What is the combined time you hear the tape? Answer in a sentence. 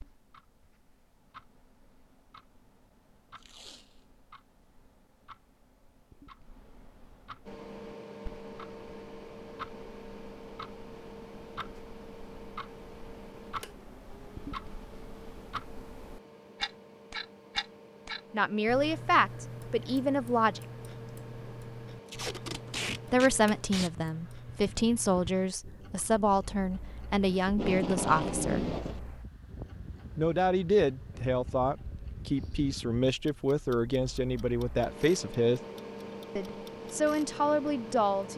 You can hear the tape for 4 seconds altogether.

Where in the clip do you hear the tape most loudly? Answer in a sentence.
The volume of the tape peaks at 28 seconds.